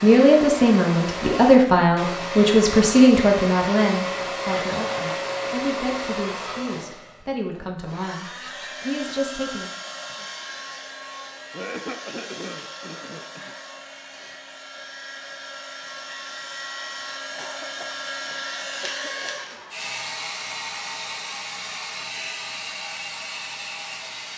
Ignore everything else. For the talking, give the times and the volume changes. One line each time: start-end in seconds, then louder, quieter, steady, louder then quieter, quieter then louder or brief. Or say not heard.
0.0-9.7 quieter.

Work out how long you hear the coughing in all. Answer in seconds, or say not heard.
5 s.